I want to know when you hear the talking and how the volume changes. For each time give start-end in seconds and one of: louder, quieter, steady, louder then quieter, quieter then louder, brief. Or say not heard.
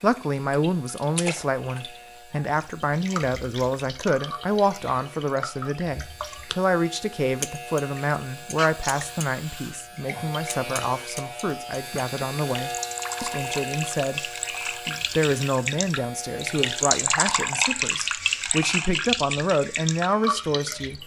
0.0-21.0 steady.